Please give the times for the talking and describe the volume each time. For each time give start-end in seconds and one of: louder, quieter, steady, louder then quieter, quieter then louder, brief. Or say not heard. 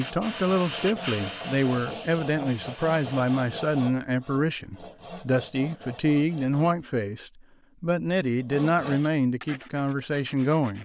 0.0-10.7 steady.